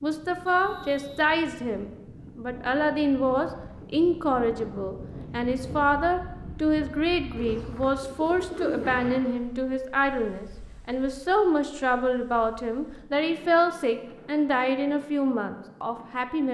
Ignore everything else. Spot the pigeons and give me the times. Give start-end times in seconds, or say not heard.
7.4-9.1.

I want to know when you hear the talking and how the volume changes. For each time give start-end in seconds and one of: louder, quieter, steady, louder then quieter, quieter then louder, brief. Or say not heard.
0.0-16.4 steady.